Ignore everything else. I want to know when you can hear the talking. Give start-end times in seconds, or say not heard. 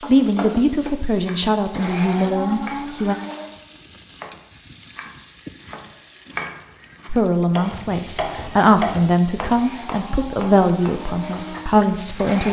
0.1-3.1, 7.0-12.4.